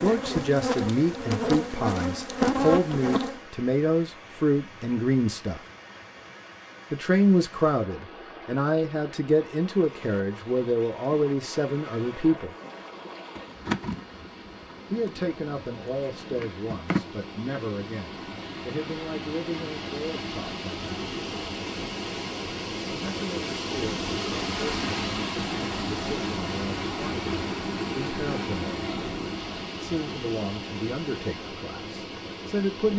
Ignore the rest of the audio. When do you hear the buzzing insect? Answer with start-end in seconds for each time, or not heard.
0.0-3.4, 13.3-17.1.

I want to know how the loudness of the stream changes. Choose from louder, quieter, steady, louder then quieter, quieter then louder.
louder.